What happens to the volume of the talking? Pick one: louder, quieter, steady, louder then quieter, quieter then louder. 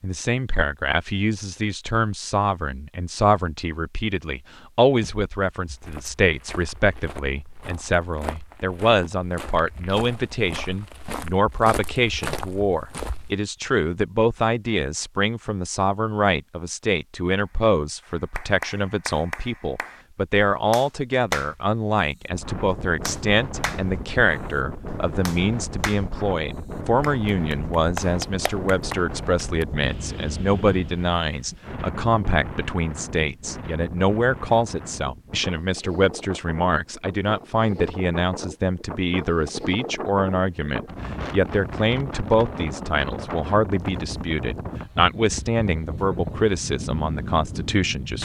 steady.